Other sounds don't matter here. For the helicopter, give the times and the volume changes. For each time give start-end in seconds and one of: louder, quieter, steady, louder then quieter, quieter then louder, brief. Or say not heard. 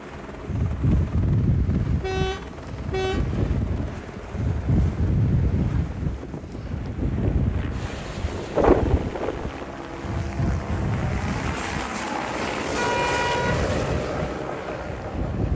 0.0-15.5 louder.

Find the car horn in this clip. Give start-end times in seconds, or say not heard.
2.0-3.4, 12.8-13.7.